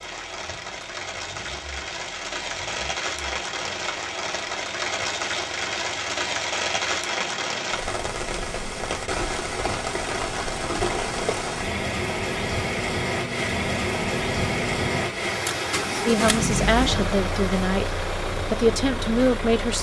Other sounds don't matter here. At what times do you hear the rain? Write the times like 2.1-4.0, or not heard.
0.0-19.7.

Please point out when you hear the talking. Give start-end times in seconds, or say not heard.
16.1-19.7.